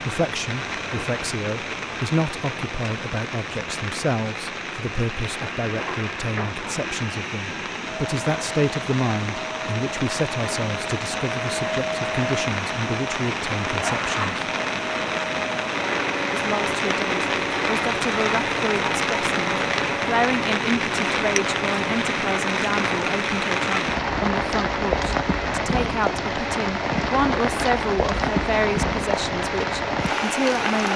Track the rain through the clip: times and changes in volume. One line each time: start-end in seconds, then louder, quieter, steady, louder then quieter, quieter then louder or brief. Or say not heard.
0.0-30.9 louder.